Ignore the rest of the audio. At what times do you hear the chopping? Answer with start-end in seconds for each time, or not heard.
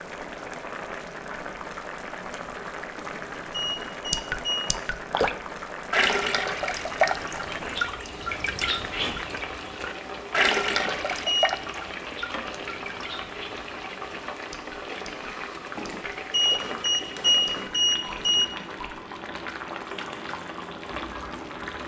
not heard.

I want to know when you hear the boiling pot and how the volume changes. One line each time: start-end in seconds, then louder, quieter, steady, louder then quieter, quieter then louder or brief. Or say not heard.
0.0-21.8 steady.